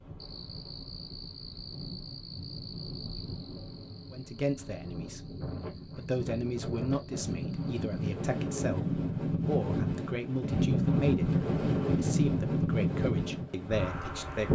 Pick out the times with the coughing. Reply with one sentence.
You can't hear the coughing here.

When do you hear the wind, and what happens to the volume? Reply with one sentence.
The wind can be heard from 0.0 to 14.5 s, getting louder.